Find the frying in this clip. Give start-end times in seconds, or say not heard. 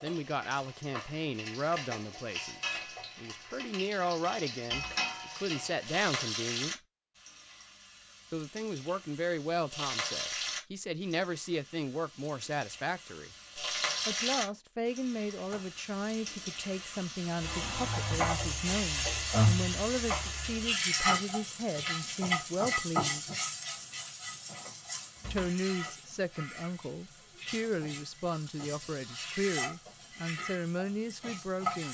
0.0-31.8.